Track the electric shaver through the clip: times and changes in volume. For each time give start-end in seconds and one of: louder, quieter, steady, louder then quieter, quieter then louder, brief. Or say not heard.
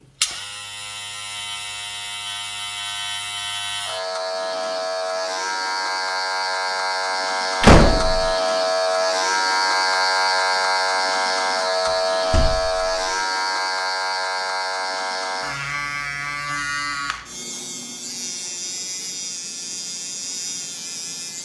0.0-21.4 louder then quieter.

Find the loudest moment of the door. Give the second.
8 s.